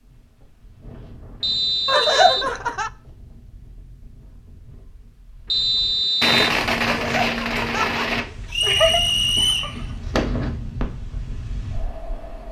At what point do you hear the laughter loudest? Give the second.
2 s.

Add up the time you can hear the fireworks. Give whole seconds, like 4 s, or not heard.
5 s.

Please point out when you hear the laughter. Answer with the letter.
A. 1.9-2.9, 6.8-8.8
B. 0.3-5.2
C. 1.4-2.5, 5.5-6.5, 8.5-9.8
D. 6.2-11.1
A.